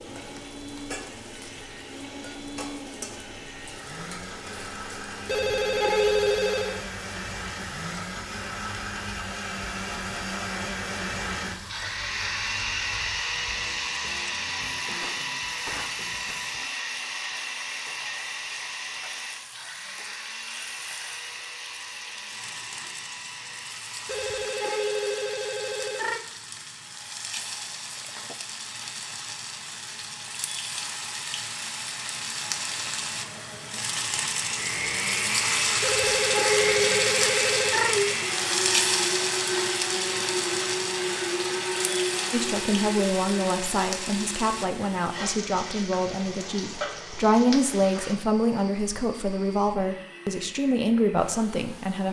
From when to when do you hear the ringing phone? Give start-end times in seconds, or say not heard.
5.2-6.8, 24.1-26.2, 35.8-38.1.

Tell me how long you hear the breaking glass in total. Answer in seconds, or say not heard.
2 s.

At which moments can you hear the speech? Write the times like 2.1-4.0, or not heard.
42.3-52.0.